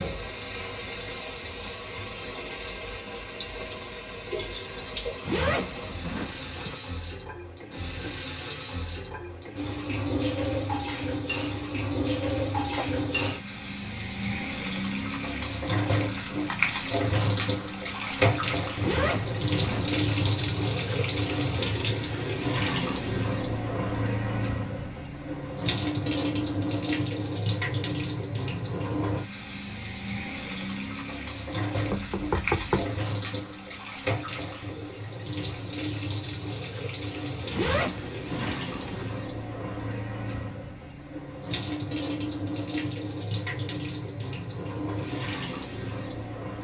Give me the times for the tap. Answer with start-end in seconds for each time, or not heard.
0.0-46.5.